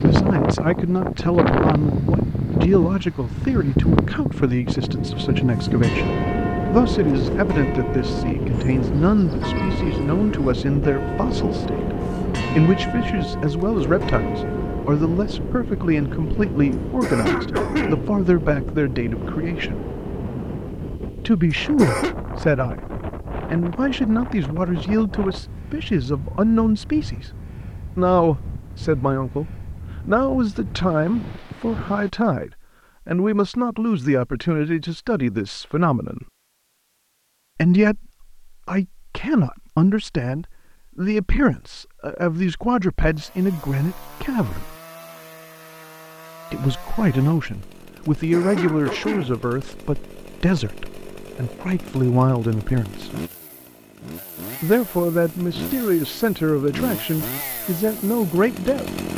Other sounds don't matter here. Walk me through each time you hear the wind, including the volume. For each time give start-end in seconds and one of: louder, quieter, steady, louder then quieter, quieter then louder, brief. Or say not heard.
0.0-32.1 quieter.